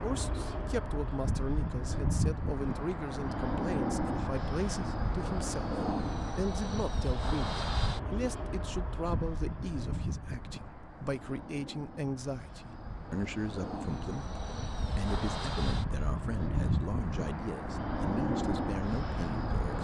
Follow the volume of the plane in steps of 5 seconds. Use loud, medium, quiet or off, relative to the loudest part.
loud, loud, medium, loud.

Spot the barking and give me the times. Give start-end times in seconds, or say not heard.
not heard.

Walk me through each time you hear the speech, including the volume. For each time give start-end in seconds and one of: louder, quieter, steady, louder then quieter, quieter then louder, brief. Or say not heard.
0.0-19.8 steady.